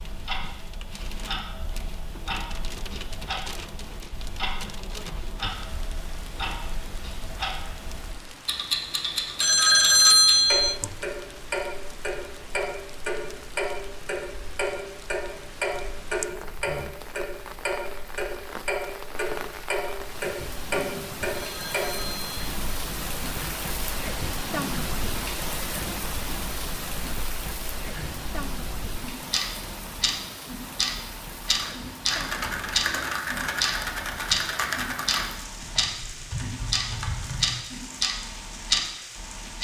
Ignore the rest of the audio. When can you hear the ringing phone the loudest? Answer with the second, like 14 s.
10 s.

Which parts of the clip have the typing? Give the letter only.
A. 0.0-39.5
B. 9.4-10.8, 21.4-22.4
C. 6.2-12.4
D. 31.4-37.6
D.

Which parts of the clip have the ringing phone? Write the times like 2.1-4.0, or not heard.
9.4-10.8, 21.4-22.4.